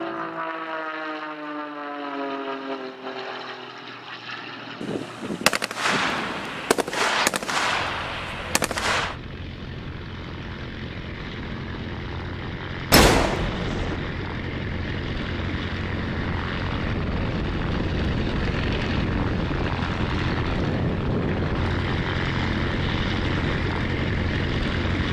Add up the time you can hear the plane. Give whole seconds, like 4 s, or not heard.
25 s.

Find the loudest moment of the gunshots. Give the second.
13 s.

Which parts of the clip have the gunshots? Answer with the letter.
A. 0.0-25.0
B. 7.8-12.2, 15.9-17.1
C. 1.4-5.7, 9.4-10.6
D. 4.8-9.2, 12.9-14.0
D.